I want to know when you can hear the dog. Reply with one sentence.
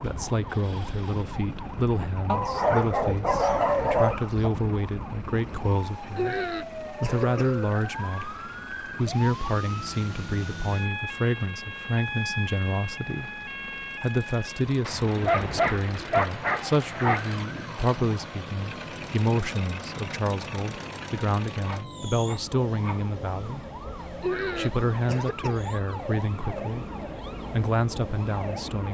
The dog can be heard from 2.2 to 4.5 s, from 14.8 to 17.4 s and from 21.6 to 23.0 s.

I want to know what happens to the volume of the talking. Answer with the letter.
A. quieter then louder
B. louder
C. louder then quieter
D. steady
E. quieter
D.